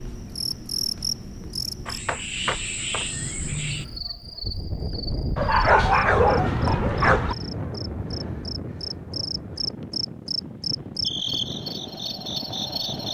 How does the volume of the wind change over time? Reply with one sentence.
The volume of the wind goes up, then down.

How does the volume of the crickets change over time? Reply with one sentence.
The volume of the crickets goes down, then up.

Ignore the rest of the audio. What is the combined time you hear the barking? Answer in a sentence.
The barking can be heard for 2 seconds in total.